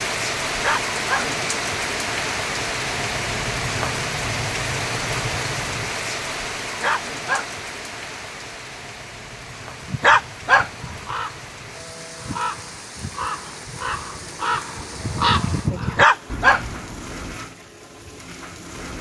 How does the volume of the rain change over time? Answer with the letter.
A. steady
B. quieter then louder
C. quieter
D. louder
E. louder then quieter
C.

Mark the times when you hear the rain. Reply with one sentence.
The rain can be heard from 0.0 to 18.9 s.